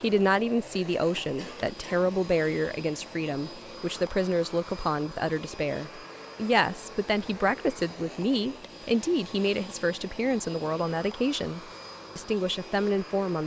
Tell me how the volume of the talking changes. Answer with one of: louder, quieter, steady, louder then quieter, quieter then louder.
steady.